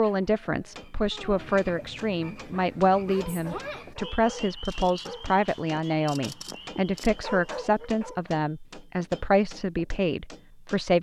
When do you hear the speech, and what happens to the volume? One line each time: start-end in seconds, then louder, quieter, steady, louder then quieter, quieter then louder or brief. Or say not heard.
0.0-10.9 steady.